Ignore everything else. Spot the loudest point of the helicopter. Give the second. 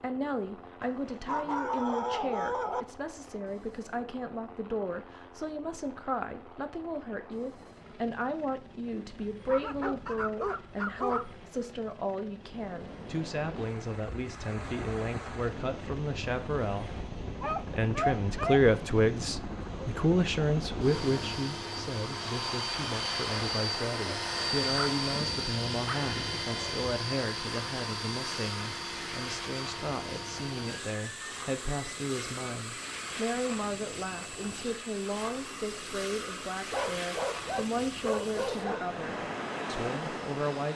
25 s.